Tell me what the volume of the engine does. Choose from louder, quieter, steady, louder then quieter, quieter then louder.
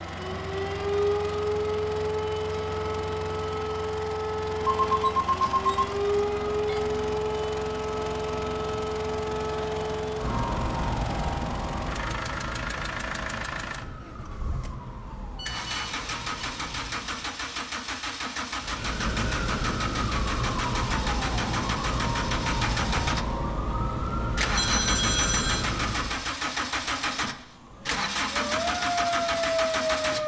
louder.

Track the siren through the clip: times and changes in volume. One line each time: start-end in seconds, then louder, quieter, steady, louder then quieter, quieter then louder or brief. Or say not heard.
0.0-17.4 quieter
18.6-26.3 steady
27.4-30.2 brief.